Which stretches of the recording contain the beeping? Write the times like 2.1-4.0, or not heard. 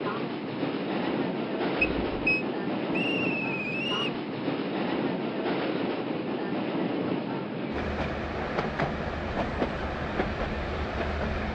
1.8-2.5.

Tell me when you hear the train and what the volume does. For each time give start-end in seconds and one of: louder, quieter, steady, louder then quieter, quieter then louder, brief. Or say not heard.
0.0-11.5 steady.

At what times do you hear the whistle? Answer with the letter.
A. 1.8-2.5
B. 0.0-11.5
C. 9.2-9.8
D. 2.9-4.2
D.